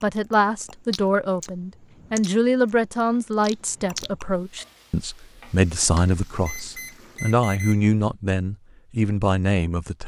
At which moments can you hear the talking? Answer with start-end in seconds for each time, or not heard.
0.0-10.0.